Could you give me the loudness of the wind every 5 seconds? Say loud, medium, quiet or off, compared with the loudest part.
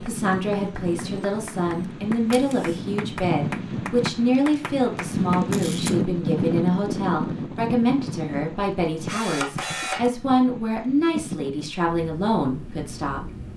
medium, loud, medium.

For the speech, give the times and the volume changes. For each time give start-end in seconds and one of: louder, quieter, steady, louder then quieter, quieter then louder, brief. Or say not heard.
0.0-13.3 steady.